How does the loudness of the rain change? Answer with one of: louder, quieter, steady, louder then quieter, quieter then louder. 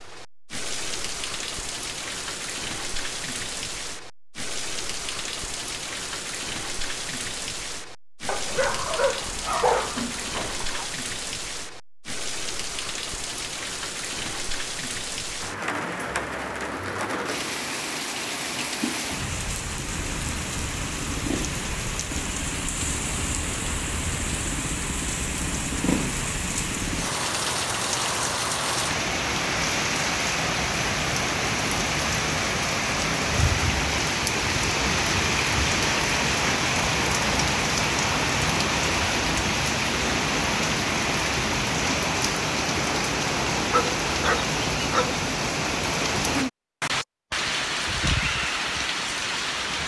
louder.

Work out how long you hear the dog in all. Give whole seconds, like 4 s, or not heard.
4 s.